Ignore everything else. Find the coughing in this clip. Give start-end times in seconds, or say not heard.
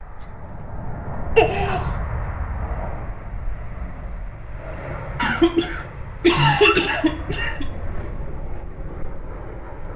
1.4-1.9, 5.2-7.7.